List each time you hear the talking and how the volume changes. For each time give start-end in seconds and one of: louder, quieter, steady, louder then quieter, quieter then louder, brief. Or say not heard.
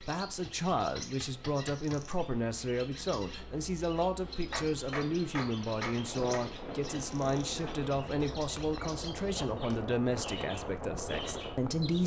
0.0-12.0 steady.